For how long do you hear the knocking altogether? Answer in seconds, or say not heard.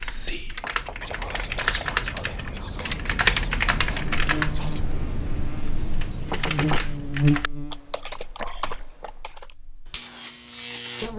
2 s.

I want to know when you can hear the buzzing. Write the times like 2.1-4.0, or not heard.
3.9-11.1.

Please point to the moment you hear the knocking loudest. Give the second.
7 s.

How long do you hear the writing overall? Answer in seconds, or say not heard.
not heard.